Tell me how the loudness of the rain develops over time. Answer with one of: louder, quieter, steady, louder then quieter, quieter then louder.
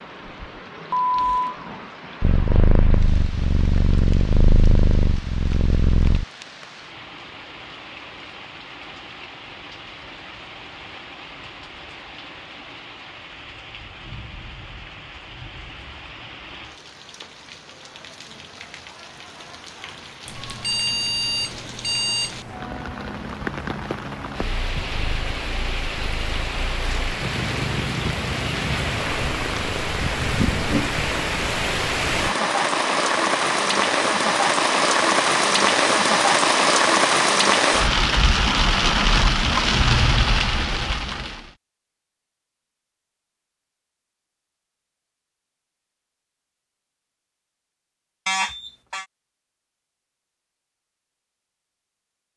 louder.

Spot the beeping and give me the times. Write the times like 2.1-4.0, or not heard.
0.9-1.6, 20.2-22.6, 48.2-49.0.